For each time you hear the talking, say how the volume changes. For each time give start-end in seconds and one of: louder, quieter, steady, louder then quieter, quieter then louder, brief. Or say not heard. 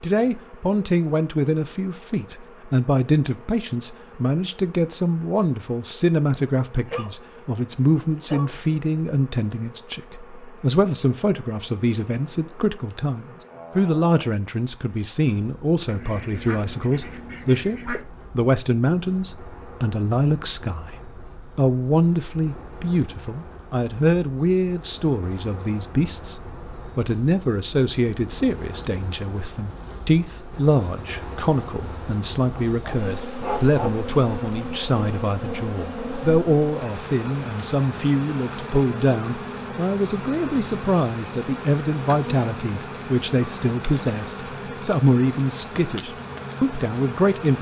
0.0-47.5 steady.